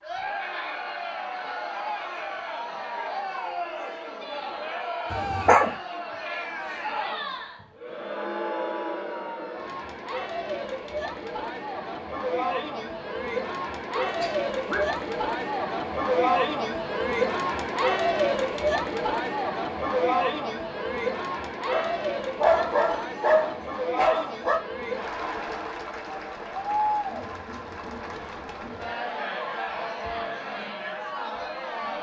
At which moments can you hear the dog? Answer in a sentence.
The dog can be heard from 5.1 to 5.7 s, from 13.9 to 15.1 s and from 21.7 to 24.6 s.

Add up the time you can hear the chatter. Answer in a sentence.
The chatter can be heard for 32 seconds in total.